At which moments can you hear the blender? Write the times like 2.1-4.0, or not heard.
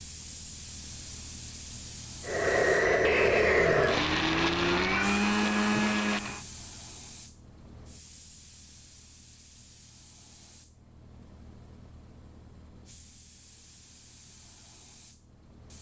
2.2-6.5.